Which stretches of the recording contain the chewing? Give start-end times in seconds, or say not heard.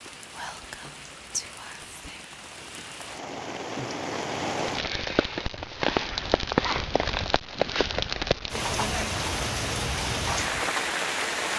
not heard.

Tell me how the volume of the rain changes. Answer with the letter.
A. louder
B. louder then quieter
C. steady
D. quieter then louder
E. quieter
A.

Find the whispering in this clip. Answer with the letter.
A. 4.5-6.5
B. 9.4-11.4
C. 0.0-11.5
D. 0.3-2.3
D.